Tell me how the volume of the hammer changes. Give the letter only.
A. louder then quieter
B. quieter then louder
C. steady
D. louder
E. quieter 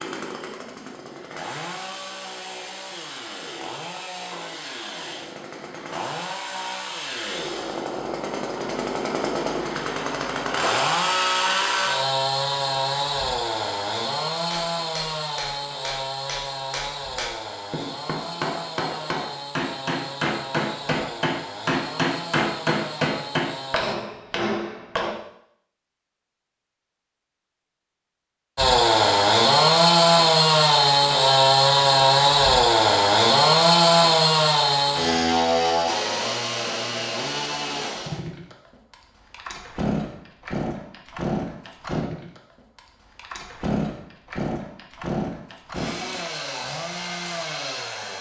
D.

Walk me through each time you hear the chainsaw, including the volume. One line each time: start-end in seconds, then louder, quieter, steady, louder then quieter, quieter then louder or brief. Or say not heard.
0.0-23.9 louder then quieter
28.6-48.1 quieter.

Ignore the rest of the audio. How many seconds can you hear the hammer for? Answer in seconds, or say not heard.
11 s.